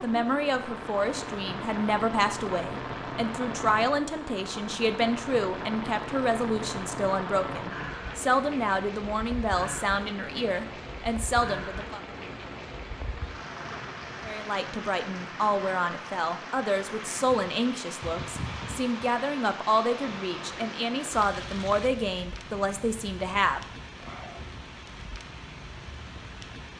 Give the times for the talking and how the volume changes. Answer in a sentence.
You can hear the talking from 0.0 to 12.0 s, at a steady volume; and from 14.2 to 23.6 s, at a steady volume.